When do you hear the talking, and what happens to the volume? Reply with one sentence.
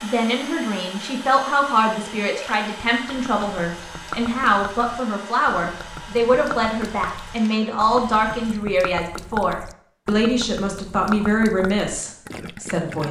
The talking can be heard from 0.0 to 13.0 s, at a steady volume.